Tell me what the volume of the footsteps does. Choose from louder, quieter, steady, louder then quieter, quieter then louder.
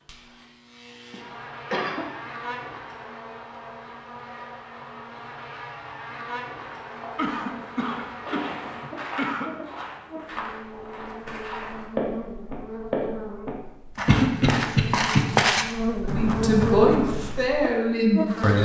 louder.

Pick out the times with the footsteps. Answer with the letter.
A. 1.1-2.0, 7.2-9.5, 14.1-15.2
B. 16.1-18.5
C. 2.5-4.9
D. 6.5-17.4
D.